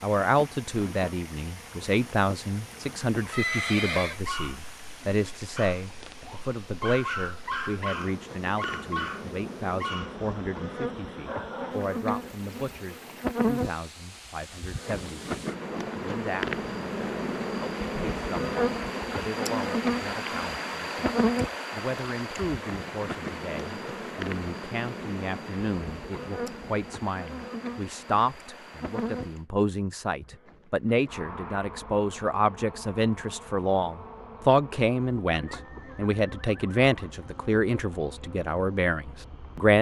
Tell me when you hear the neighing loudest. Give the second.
4 s.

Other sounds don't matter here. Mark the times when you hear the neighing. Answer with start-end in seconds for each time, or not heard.
3.3-4.2, 35.3-37.1.